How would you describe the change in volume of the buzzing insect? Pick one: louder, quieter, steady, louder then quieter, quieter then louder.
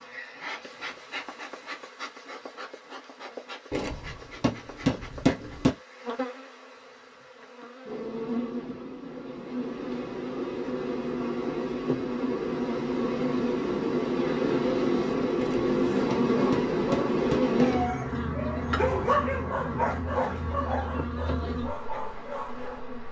louder then quieter.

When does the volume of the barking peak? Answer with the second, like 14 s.
19 s.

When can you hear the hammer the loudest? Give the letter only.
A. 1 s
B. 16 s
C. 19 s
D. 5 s
D.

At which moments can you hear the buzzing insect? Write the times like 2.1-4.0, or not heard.
0.0-23.0.